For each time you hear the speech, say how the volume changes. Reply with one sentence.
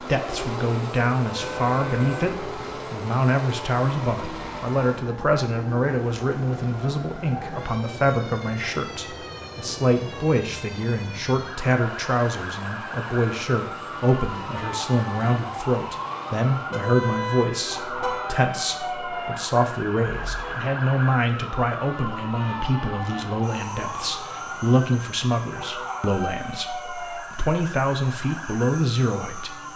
You can hear the speech from 0.0 to 29.7 s, at a steady volume.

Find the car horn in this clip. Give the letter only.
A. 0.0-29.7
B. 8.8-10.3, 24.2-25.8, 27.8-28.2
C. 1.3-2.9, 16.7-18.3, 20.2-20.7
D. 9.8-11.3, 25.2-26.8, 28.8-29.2
C.